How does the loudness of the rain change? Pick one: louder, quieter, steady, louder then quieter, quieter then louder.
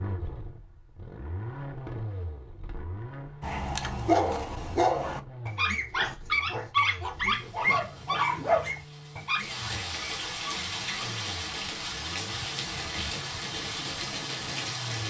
louder.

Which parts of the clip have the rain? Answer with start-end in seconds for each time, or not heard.
7.2-15.0.